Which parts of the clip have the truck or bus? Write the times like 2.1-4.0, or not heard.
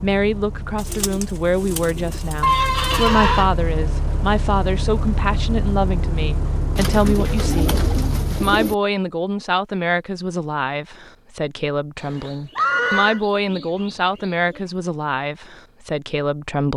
0.0-8.7.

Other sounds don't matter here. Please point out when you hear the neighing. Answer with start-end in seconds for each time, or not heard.
2.4-3.5, 12.6-13.2.